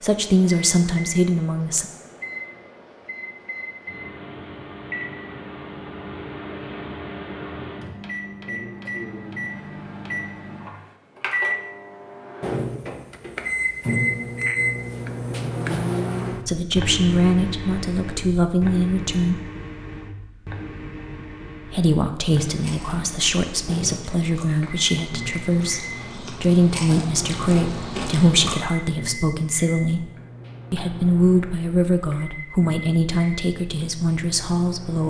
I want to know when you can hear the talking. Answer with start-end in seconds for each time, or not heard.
0.0-1.9, 16.4-19.4, 21.6-30.1, 30.7-35.0.